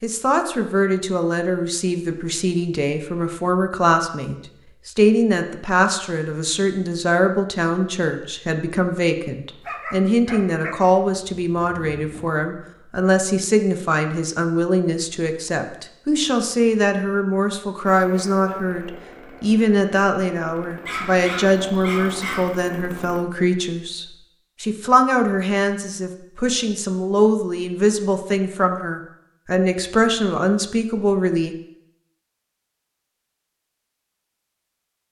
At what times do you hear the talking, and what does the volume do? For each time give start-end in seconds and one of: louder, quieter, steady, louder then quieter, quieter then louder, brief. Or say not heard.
0.0-31.6 steady.